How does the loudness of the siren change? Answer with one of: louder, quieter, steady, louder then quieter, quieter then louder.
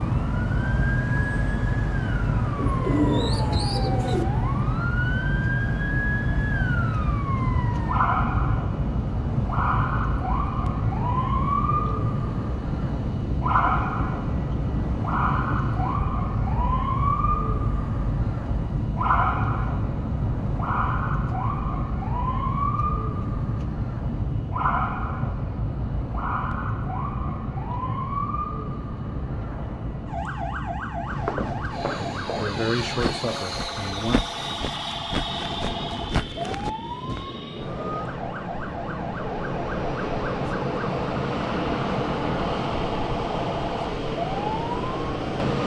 quieter.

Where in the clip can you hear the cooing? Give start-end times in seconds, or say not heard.
2.5-4.2.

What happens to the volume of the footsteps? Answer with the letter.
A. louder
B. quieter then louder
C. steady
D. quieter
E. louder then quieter
C.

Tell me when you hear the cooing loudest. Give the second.
3 s.